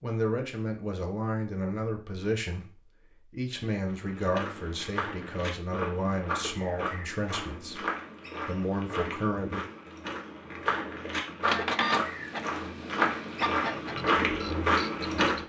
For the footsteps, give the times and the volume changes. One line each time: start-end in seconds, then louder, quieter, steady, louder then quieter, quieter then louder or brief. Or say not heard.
3.9-15.4 louder.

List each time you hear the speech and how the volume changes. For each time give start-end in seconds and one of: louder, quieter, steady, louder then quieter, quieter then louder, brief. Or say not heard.
0.0-7.8 steady
8.4-9.7 brief.